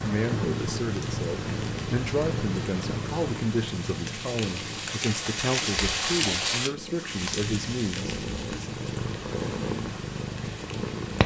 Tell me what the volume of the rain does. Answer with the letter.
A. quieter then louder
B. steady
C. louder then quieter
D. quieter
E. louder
C.